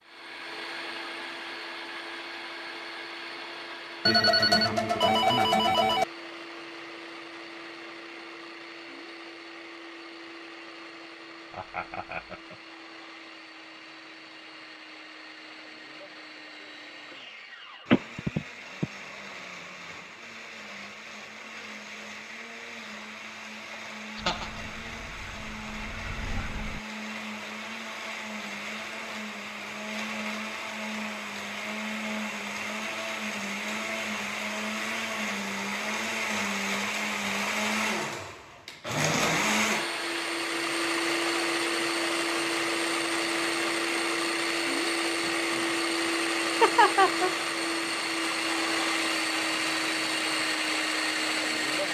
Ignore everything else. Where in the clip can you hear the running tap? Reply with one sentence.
The running tap can be heard from 24.1 to 26.8 s.